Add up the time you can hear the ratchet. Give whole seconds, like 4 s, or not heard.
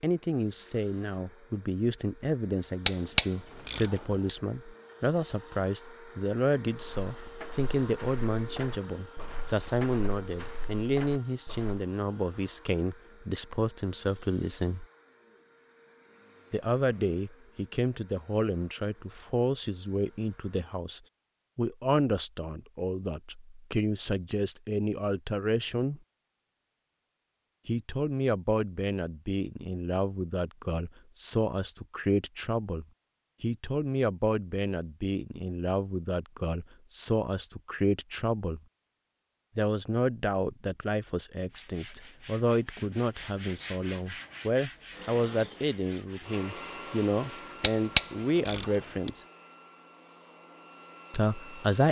3 s.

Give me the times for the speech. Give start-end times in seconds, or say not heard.
0.0-14.8, 16.5-26.0, 27.6-38.6, 39.5-49.2, 51.1-51.8.